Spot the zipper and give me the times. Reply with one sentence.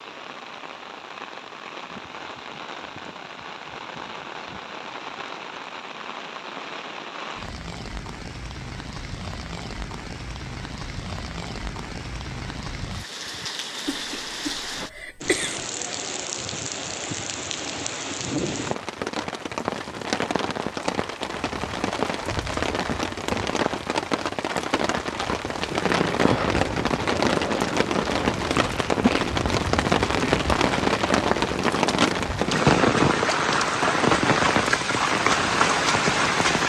You can't hear the zipper here.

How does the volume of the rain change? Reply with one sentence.
The loudness of the rain goes up.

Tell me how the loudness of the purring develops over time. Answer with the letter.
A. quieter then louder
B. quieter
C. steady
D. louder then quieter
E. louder
C.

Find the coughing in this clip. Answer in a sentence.
The coughing can be heard from 13.8 to 15.7 s.